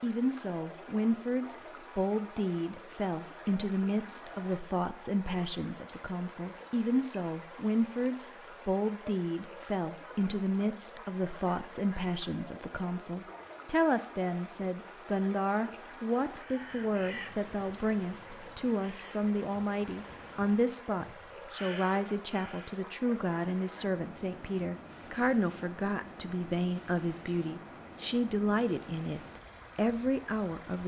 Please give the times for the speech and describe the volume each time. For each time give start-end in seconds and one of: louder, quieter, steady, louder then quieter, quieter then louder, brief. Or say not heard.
0.0-30.8 steady.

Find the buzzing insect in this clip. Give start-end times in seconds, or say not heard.
not heard.